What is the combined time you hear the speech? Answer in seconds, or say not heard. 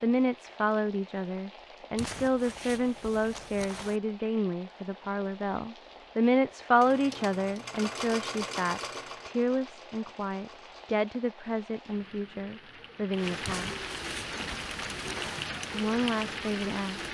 15 s.